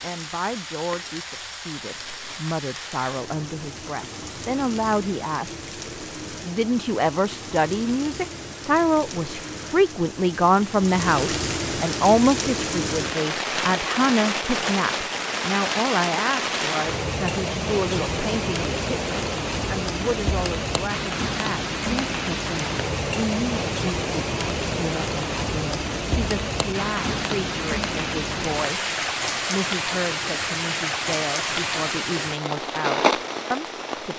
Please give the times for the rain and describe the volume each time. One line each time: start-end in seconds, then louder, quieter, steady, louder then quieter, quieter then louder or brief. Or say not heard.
0.0-34.1 louder.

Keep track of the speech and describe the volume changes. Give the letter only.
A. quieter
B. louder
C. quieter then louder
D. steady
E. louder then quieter
E.